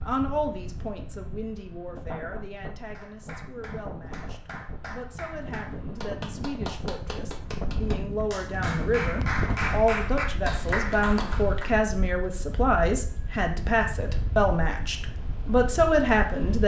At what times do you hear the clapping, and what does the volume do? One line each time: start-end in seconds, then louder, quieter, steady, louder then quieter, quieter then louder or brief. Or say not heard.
2.9-11.8 louder.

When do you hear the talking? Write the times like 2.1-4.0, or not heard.
0.0-16.6.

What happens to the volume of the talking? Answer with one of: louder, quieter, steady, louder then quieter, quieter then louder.
louder.